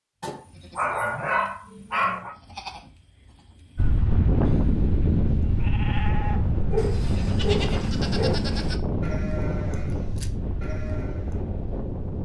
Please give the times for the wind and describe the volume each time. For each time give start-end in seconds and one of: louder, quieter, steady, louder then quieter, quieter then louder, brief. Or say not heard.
3.8-12.2 quieter.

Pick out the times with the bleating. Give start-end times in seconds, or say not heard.
0.3-11.4.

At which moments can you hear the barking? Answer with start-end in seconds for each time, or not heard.
0.2-2.4, 6.7-8.4.